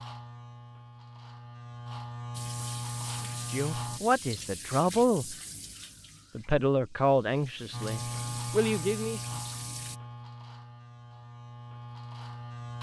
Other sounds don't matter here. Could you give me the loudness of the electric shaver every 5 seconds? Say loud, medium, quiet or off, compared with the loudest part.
loud, loud, medium.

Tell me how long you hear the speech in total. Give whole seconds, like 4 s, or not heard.
5 s.